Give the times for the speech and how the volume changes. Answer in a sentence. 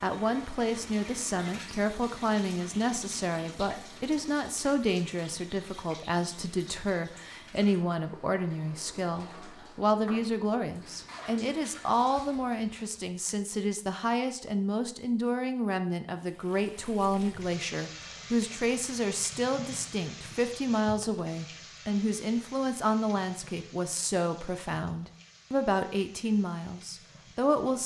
The speech can be heard from 0.0 to 27.8 s, at a steady volume.